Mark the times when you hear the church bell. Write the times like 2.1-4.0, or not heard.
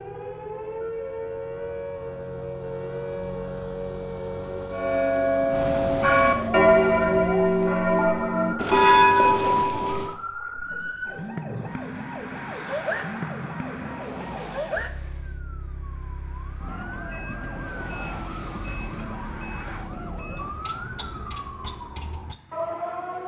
4.7-10.2.